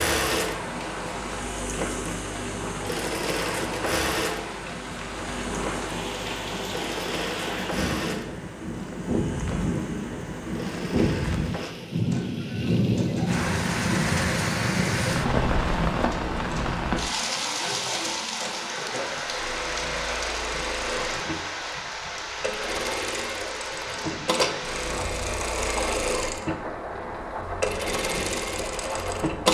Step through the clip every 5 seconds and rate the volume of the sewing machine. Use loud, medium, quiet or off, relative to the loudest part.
loud, medium, medium, medium, loud, loud.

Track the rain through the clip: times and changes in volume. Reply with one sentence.
You can hear the rain from 0.0 to 29.4 s, getting louder then quieter.